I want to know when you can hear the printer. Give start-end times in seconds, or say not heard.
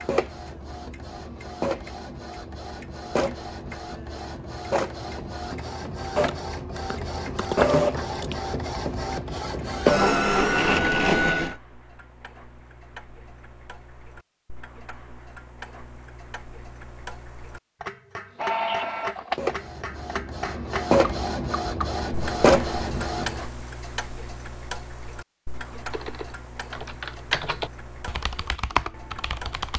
0.0-11.6, 18.4-23.4.